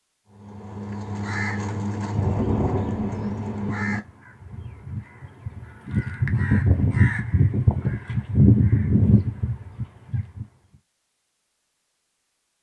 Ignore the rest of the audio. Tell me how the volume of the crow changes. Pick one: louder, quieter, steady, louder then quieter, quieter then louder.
louder.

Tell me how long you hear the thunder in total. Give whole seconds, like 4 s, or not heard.
2 s.